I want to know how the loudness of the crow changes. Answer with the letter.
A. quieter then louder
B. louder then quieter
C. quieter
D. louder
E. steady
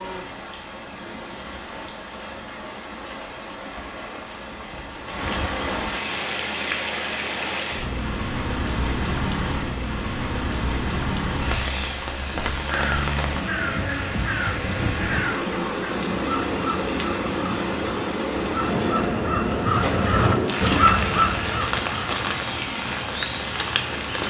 D.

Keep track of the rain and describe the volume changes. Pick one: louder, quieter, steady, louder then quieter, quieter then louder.
louder.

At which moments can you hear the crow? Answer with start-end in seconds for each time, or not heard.
12.7-22.4.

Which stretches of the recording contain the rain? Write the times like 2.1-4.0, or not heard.
0.0-24.2.